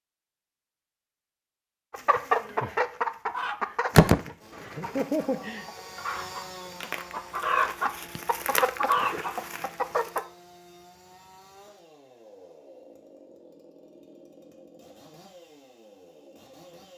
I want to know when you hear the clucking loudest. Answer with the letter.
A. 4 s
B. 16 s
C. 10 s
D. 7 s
A.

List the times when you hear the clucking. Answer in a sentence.
The clucking can be heard from 1.9 to 10.2 s.